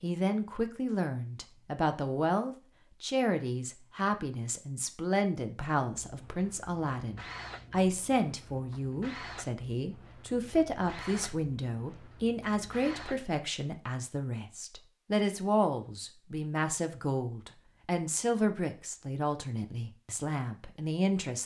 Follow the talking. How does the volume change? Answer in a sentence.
The loudness of the talking stays about the same.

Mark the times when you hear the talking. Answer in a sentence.
The talking can be heard from 0.0 to 21.4 s.